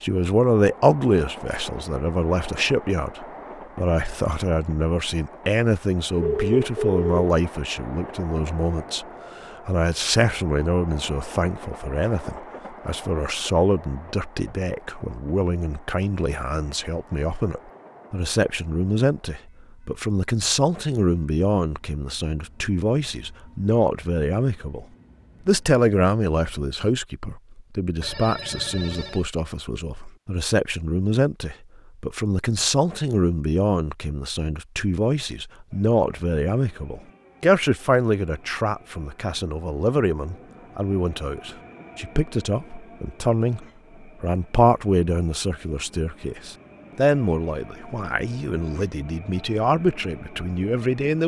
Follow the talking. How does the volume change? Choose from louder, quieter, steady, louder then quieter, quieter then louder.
steady.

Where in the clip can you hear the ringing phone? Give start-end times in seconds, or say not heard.
6.2-7.2, 28.0-29.2.